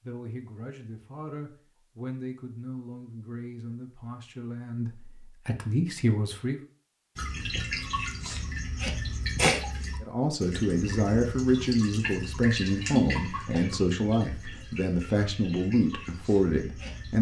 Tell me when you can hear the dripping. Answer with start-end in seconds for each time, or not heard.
7.2-17.1.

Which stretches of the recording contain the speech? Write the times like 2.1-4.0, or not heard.
0.0-6.6, 10.0-17.1.